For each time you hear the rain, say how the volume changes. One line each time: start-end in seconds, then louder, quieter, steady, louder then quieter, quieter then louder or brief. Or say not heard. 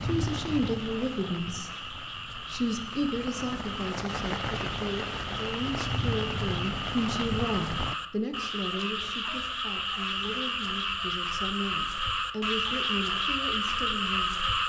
0.0-8.0 quieter then louder.